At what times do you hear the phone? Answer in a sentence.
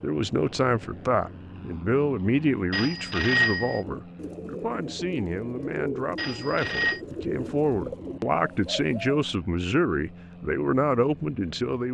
The phone can be heard from 2.7 to 3.8 s and from 6.2 to 7.0 s.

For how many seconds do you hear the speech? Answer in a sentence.
You can hear the speech for 12 seconds altogether.